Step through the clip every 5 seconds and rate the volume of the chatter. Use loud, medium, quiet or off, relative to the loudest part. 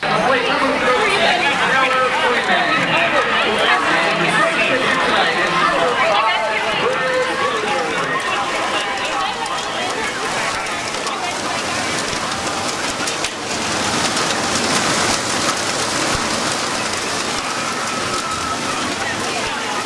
loud, loud, medium, medium.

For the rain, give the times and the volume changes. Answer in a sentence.
The rain can be heard from 0.1 to 19.8 s, getting louder.